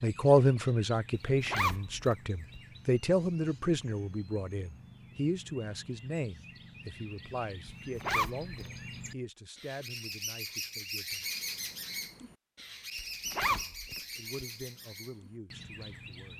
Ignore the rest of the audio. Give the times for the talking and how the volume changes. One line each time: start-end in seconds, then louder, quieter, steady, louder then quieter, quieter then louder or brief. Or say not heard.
0.0-11.2 quieter
13.5-16.3 brief.